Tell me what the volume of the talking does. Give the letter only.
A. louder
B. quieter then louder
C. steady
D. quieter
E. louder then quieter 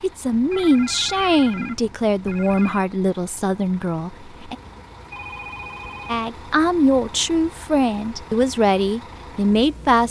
B.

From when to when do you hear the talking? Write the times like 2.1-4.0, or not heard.
0.0-4.5, 6.0-10.0.